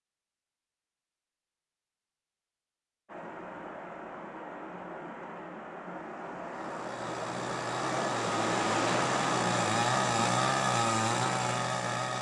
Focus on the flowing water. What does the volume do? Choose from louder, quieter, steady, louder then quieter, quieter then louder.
louder then quieter.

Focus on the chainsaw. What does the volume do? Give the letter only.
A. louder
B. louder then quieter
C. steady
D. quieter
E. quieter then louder
A.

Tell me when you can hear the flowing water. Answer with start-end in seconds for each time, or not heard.
3.0-12.1.